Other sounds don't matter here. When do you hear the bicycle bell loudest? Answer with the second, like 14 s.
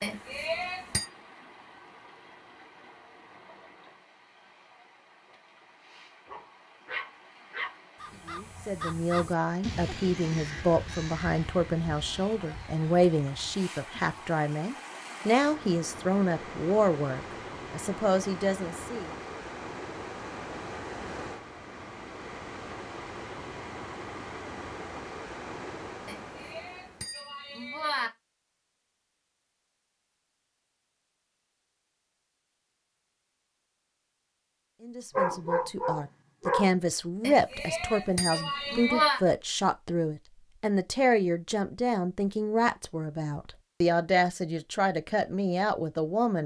39 s.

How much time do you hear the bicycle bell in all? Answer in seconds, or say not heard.
5 s.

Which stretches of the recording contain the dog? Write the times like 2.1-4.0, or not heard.
6.2-8.2, 35.1-36.7.